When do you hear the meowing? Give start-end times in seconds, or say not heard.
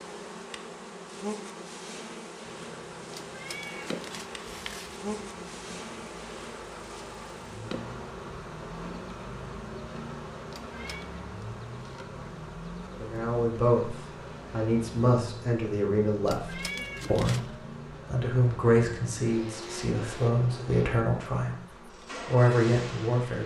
3.1-5.0, 10.5-11.1, 16.2-17.6.